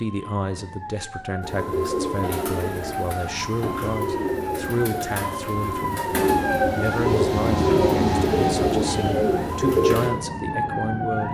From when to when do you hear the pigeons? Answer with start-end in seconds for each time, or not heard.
1.4-10.1.